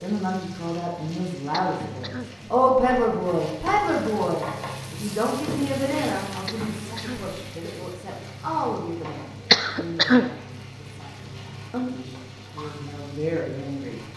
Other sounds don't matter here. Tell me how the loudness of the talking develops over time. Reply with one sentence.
The volume of the talking goes down.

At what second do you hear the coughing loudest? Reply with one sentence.
The volume of the coughing peaks at 10 seconds.